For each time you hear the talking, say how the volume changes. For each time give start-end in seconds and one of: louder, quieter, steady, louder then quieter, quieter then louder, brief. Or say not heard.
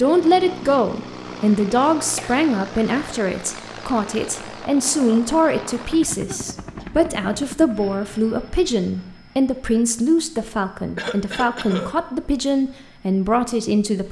0.0-14.0 steady.